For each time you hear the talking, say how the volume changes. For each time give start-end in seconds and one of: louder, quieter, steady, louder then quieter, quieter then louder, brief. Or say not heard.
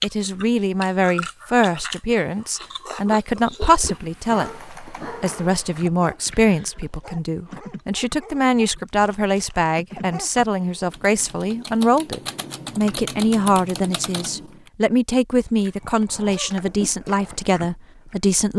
0.0-18.5 steady.